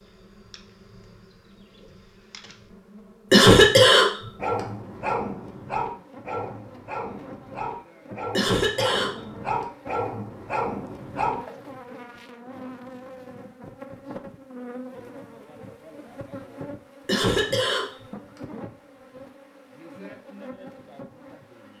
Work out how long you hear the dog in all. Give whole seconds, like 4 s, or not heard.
7 s.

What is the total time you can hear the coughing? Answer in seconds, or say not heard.
3 s.